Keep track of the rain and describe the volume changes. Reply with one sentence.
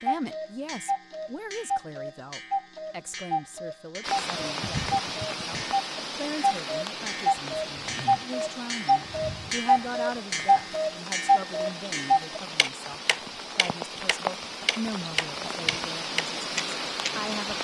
The volume of the rain goes down, then up.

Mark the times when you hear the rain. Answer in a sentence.
The rain can be heard from 4.0 to 17.5 s.